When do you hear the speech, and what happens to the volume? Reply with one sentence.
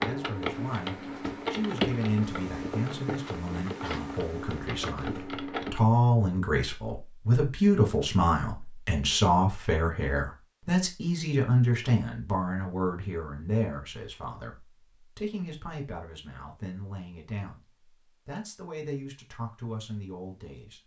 The speech can be heard from 0.0 to 20.8 s, getting louder then quieter.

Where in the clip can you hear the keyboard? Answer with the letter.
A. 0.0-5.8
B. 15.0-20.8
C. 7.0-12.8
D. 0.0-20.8
A.